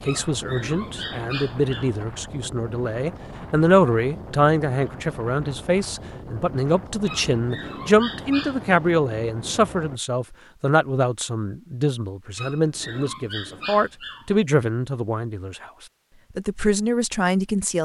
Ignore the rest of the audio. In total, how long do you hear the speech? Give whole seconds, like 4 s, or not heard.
17 s.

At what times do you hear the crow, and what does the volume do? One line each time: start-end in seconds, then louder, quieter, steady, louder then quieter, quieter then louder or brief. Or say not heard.
not heard.